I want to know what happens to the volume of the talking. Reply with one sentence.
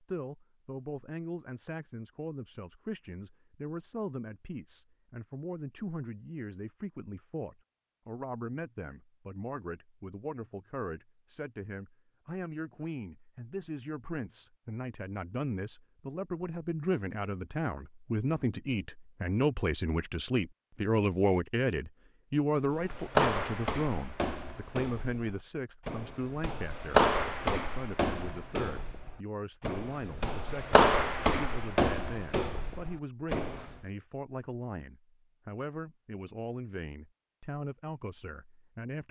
The loudness of the talking goes up, then down.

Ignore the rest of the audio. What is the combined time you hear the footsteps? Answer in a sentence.
The footsteps can be heard for 11 seconds in total.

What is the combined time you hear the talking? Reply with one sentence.
The talking can be heard for 39 seconds in total.